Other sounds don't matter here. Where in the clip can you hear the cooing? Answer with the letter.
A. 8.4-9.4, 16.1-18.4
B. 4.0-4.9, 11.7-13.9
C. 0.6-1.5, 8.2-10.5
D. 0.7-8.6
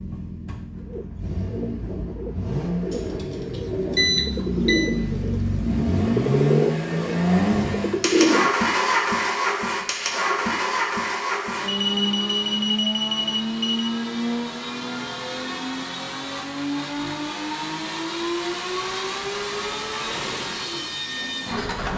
D.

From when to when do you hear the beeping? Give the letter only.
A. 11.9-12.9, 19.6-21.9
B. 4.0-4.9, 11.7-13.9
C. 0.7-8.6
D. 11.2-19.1
B.